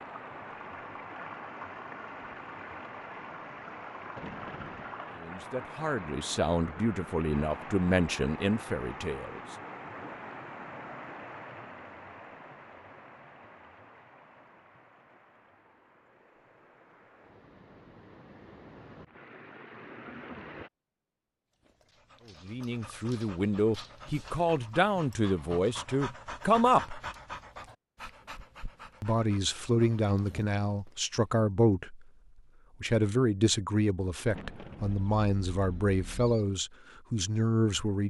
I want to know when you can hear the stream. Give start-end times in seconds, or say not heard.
0.0-20.7.